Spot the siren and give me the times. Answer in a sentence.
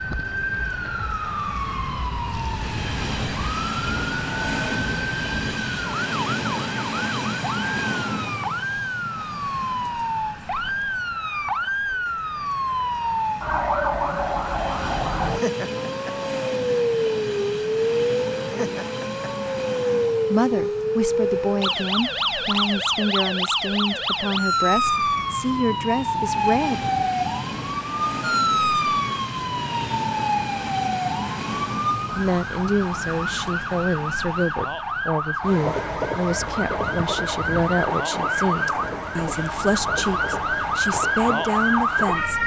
You can hear the siren from 0.0 to 42.4 s.